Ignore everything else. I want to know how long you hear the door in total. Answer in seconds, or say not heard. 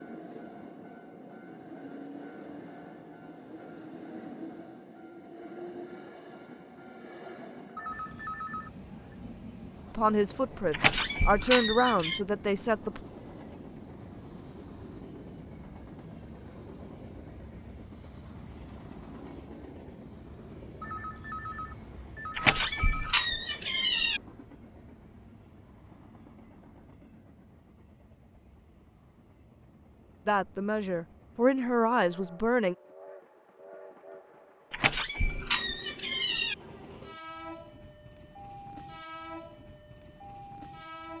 5 s.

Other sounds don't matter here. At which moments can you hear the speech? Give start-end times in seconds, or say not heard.
9.9-13.0, 30.2-32.8.